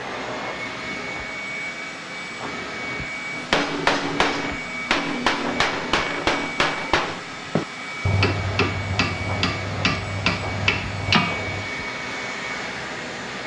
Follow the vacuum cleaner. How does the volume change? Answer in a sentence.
The loudness of the vacuum cleaner stays about the same.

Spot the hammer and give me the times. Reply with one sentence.
The hammer can be heard from 3.3 to 11.7 s.